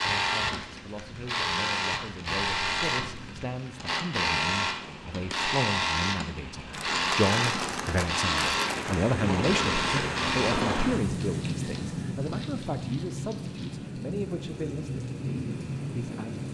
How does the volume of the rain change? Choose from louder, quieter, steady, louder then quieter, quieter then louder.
louder.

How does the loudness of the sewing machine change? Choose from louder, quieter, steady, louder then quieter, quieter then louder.
steady.